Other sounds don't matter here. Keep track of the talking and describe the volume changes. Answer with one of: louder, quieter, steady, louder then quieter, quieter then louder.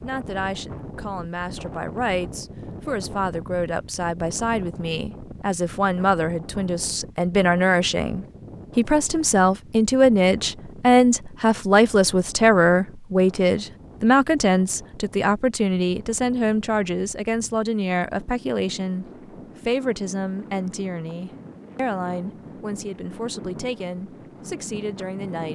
louder then quieter.